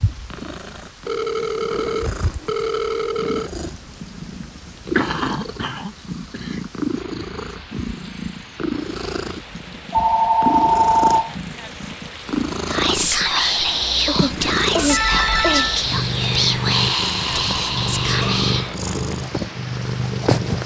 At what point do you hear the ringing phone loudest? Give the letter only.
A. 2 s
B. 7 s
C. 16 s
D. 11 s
D.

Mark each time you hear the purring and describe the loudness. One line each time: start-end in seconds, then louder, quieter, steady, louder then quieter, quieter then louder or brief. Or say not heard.
0.0-20.6 louder.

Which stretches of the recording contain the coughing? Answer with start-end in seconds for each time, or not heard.
5.0-6.6, 14.1-15.7.